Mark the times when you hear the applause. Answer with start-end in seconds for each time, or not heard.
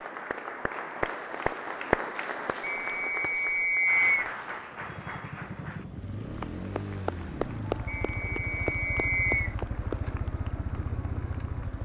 0.0-11.8.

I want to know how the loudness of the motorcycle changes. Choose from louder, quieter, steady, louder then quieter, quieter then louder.
steady.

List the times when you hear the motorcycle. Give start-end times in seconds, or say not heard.
4.7-11.8.